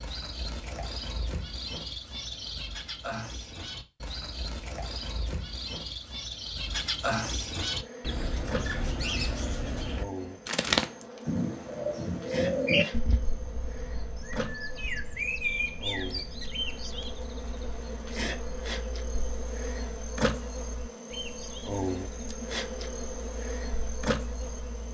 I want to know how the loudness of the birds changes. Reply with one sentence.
The loudness of the birds goes up, then down.